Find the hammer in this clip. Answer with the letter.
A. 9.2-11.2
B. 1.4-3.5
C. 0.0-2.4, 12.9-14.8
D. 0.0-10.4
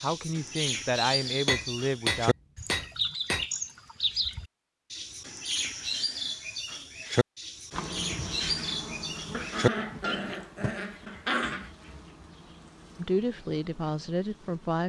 B.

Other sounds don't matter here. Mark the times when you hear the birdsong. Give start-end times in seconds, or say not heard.
0.0-10.4.